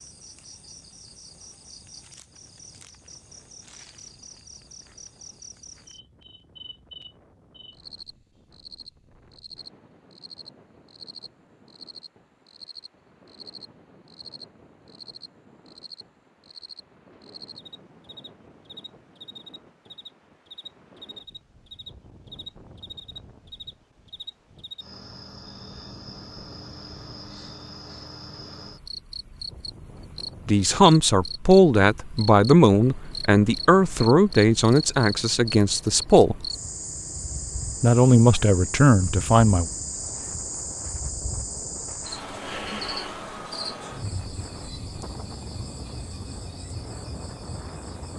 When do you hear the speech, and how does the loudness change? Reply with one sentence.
You can hear the speech from 30.4 to 36.5 s, getting quieter; and briefly from 37.8 to 39.7 s.